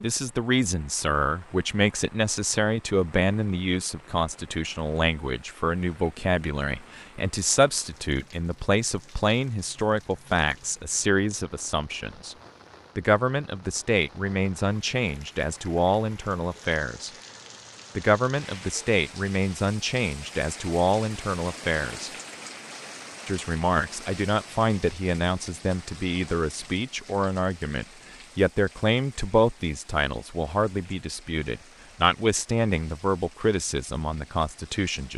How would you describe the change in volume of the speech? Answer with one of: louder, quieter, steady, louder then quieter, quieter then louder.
steady.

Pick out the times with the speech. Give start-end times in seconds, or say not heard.
0.0-12.3, 12.9-17.1, 17.9-22.1, 23.2-35.1.